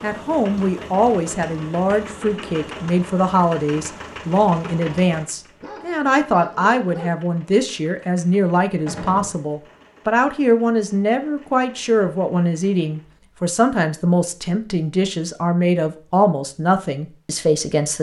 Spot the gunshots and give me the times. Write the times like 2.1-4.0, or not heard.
8.8-9.3.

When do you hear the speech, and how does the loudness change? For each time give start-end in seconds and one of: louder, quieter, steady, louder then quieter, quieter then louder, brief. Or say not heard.
0.0-17.9 steady.